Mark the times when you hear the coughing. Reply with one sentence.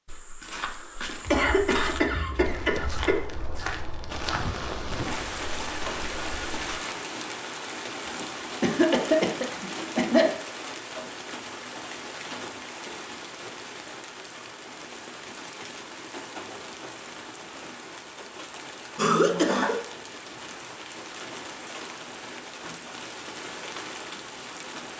You can hear the coughing from 1.2 to 3.2 s, from 8.6 to 10.3 s and from 18.9 to 19.8 s.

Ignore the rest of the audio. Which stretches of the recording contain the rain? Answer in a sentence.
The rain can be heard from 4.1 to 24.9 s.